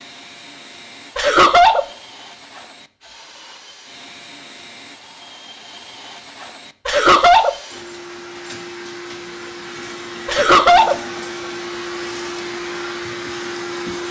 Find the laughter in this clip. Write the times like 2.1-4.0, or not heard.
1.1-1.9, 6.8-7.5, 10.2-11.0.